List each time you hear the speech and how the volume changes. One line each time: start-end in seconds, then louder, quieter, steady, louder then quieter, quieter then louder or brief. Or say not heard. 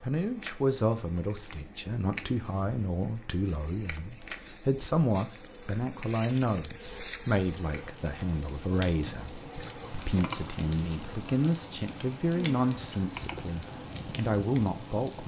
0.0-15.2 steady.